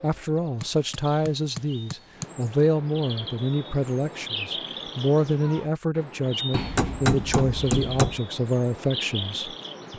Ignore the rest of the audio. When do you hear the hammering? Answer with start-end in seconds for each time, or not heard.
0.6-2.3, 6.5-8.2.